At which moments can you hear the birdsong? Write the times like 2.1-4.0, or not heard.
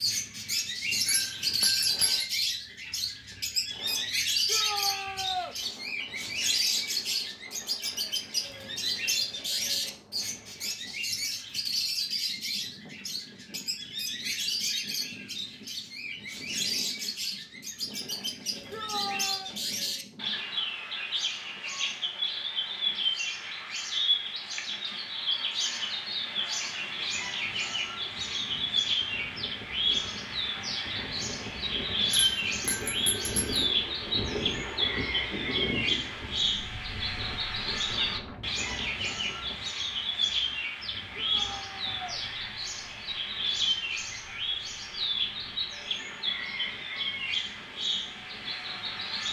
0.0-49.2.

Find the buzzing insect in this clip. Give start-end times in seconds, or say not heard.
not heard.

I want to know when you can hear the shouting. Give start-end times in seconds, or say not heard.
4.5-5.5, 18.7-19.6, 41.1-42.2.